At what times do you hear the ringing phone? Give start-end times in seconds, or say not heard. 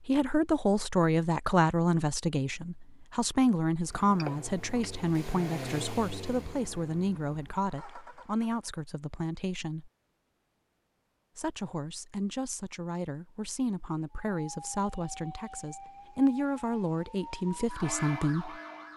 4.2-4.9.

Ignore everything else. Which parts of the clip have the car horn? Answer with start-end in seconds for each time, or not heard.
not heard.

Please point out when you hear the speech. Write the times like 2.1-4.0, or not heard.
0.1-9.9, 11.3-18.6.